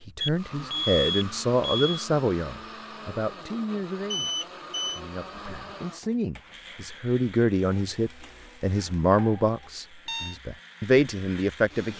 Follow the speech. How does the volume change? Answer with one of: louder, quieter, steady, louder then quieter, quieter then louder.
quieter then louder.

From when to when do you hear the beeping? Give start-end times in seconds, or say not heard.
0.2-2.0, 4.1-5.0, 9.2-10.3.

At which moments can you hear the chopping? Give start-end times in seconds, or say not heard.
not heard.